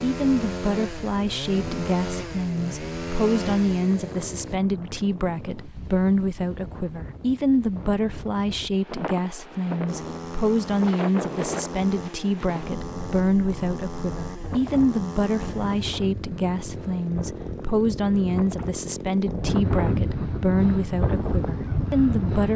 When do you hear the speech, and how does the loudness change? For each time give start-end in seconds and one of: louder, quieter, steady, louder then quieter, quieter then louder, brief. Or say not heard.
0.0-22.5 steady.